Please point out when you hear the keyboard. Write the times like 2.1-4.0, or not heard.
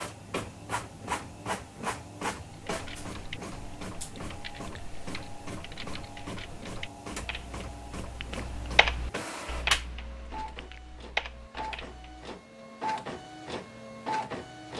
2.5-12.3.